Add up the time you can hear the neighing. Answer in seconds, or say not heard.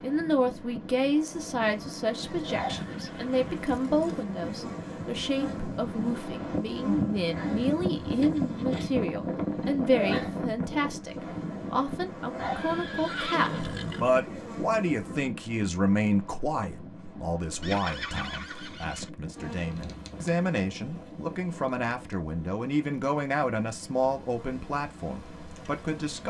5 s.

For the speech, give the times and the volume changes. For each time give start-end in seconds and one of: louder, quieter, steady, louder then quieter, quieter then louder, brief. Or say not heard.
0.0-26.2 steady.